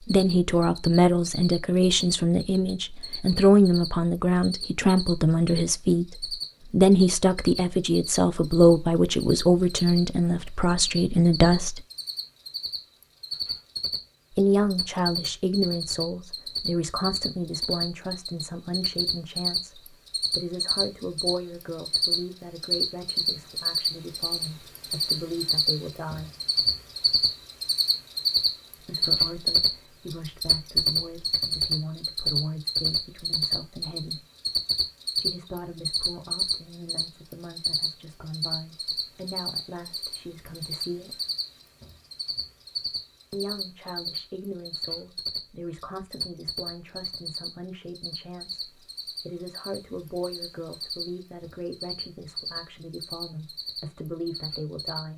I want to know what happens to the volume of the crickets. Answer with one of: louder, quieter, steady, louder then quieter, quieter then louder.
louder then quieter.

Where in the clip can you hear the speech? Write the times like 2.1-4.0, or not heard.
0.1-11.8, 14.3-26.3, 28.8-34.2, 35.1-41.1, 43.3-55.1.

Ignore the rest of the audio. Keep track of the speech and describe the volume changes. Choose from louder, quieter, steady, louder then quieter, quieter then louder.
quieter.